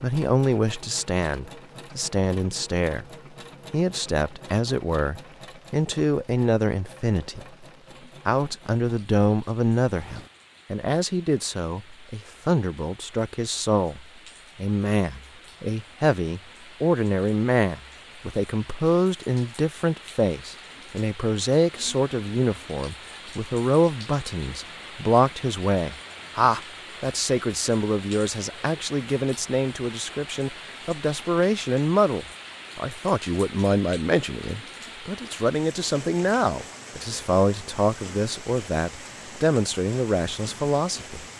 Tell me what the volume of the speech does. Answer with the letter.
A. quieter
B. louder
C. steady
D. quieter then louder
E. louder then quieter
C.